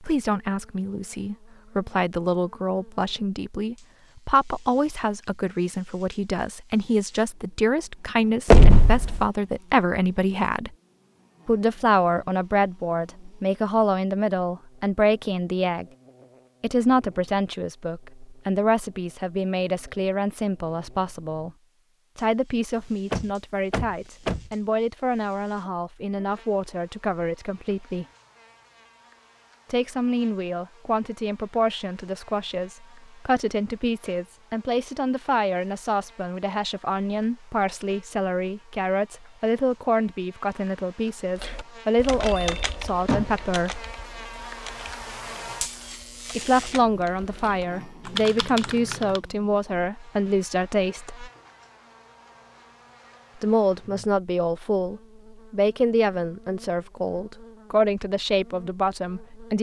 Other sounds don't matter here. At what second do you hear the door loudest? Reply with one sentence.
The volume of the door peaks at 9 seconds.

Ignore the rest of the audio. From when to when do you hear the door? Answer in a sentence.
You can hear the door from 8.5 to 9.2 s, from 23.1 to 24.5 s and from 42.2 to 43.5 s.